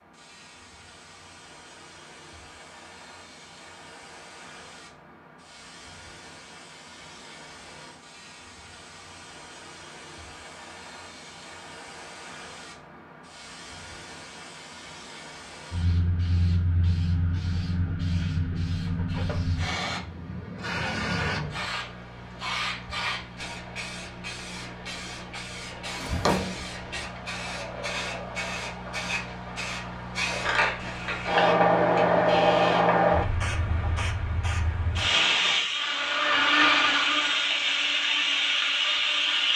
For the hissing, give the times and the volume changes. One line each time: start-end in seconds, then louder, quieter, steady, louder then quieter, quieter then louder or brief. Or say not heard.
0.0-39.5 louder.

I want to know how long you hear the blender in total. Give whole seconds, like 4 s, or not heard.
4 s.